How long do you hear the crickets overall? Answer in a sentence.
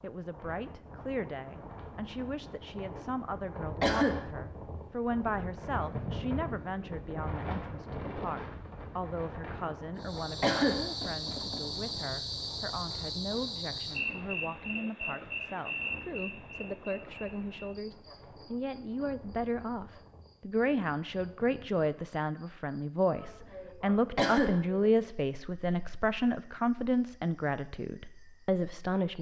You can hear the crickets for 19 seconds altogether.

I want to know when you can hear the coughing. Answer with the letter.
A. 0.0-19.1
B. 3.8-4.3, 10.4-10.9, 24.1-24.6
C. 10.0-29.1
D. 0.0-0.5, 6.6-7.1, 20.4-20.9
B.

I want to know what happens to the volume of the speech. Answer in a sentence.
The loudness of the speech goes up.